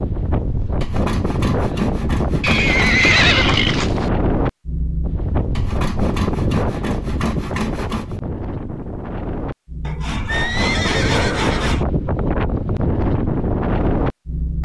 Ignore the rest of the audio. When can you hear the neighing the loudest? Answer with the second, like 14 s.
3 s.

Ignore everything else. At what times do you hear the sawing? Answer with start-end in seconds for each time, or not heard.
0.8-3.0, 5.5-8.2, 9.8-11.8.